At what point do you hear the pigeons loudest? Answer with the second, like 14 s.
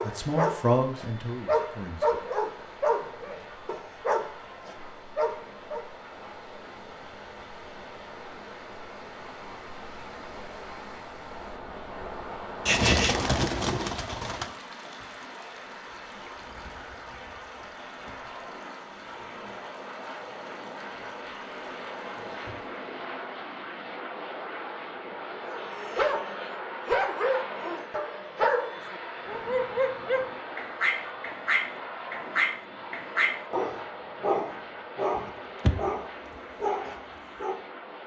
13 s.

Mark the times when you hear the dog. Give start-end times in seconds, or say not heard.
0.0-5.8, 25.4-37.6.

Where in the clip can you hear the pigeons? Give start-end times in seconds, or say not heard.
12.7-14.5.